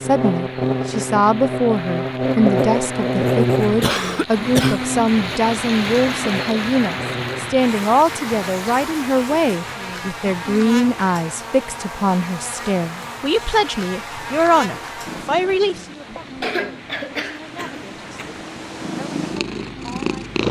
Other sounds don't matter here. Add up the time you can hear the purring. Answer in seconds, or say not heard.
5 s.